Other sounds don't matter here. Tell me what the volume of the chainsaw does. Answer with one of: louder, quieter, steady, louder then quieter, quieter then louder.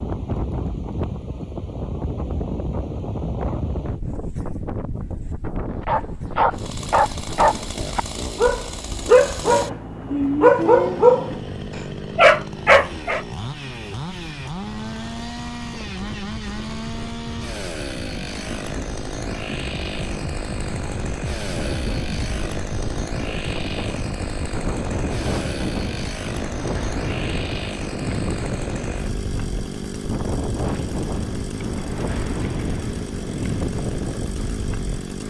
steady.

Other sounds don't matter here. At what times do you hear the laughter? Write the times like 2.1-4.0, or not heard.
not heard.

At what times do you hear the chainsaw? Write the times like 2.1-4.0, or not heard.
6.5-35.2.